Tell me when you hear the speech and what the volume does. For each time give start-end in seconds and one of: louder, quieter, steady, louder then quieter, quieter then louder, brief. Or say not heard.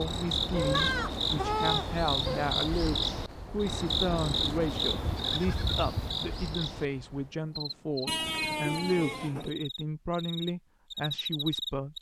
0.0-11.9 steady.